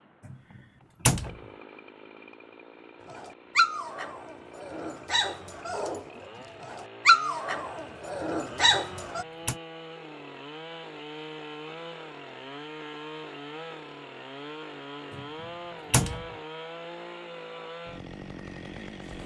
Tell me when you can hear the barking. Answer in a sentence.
You can hear the barking from 3.1 to 9.2 s.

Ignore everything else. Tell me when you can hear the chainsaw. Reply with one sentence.
You can hear the chainsaw from 0.0 to 19.2 s.